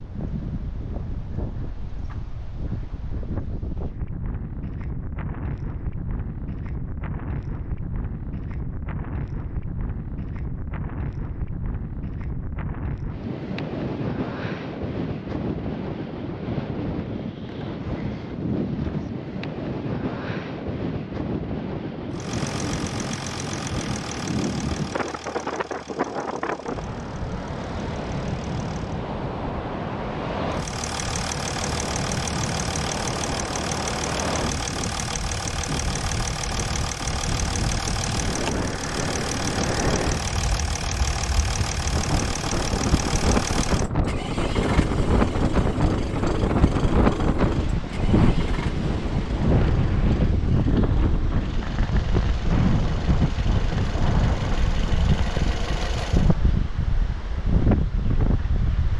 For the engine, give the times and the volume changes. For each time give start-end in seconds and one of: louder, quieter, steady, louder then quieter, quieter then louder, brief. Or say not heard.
22.1-29.0 quieter
30.5-56.4 quieter.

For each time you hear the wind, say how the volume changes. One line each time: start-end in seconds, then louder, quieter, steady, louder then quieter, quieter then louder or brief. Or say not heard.
0.0-58.9 louder.